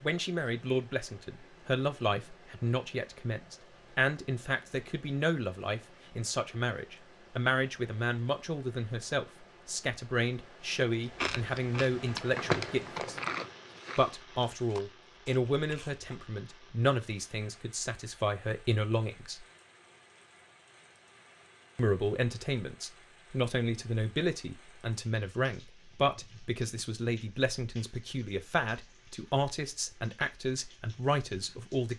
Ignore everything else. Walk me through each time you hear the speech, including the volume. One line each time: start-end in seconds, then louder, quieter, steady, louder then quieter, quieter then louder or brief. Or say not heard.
0.0-13.2 steady
13.9-19.4 quieter then louder
21.8-31.9 steady.